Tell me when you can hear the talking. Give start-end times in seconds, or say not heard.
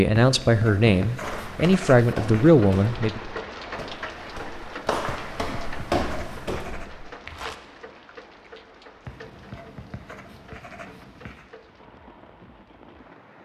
0.0-3.2.